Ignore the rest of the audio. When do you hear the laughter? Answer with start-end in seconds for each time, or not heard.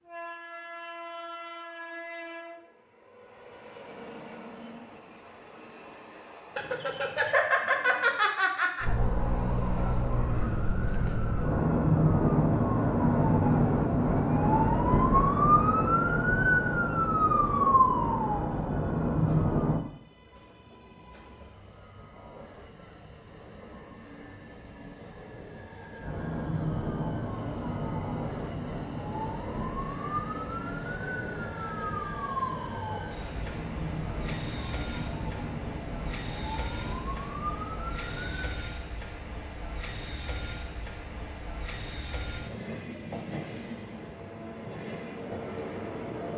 6.5-8.8.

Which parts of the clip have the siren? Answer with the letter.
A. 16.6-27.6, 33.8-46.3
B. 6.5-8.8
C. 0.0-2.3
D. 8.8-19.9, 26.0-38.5
D.